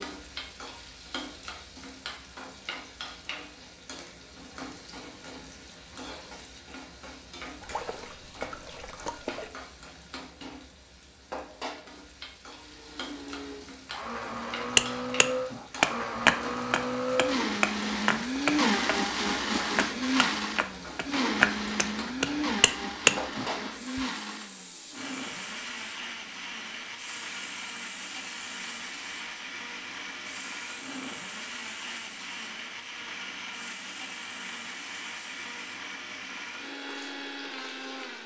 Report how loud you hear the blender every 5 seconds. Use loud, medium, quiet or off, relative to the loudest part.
off, off, medium, loud, loud, medium, medium, medium.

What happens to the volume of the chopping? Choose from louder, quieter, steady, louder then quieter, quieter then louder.
quieter then louder.